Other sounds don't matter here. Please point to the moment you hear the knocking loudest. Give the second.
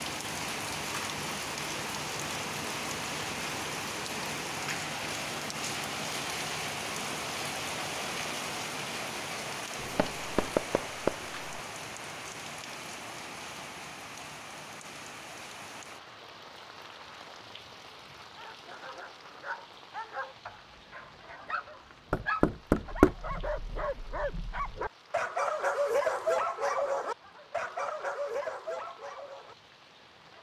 23 s.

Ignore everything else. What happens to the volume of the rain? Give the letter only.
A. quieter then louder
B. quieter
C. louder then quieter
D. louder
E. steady
B.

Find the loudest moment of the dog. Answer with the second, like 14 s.
26 s.